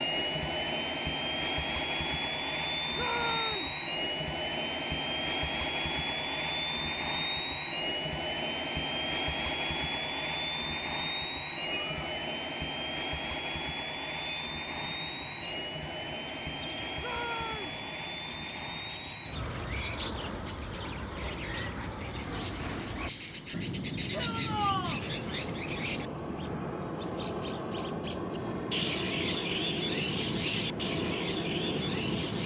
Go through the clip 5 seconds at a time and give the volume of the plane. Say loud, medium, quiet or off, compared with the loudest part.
loud, loud, loud, medium, medium, loud, loud.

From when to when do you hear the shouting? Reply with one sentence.
The shouting can be heard from 2.9 to 3.8 s, from 16.9 to 17.8 s and from 24.1 to 25.1 s.